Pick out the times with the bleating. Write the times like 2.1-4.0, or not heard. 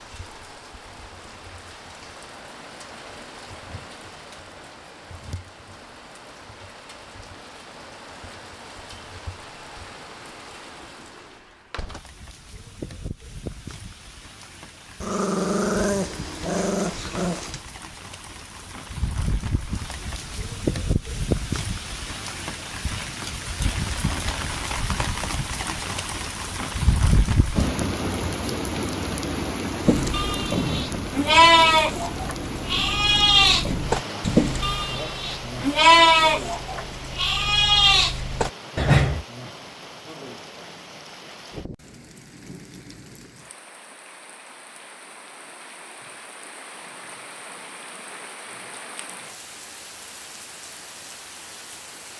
29.8-39.2.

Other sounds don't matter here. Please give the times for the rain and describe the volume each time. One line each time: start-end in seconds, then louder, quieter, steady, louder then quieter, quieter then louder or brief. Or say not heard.
0.0-52.1 louder then quieter.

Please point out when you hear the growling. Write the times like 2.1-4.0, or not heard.
15.0-17.6.